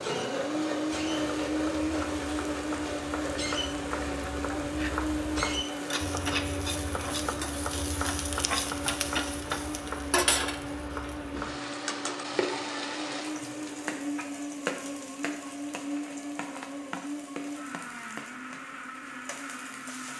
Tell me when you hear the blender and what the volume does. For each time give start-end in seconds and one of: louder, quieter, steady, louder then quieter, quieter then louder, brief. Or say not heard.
0.0-20.1 quieter.